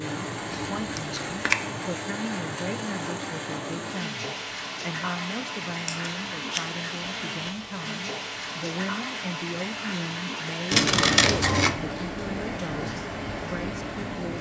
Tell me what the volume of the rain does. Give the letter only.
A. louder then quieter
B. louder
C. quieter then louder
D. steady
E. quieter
D.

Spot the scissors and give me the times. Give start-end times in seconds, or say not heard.
0.5-1.6, 5.8-6.7, 10.7-11.8.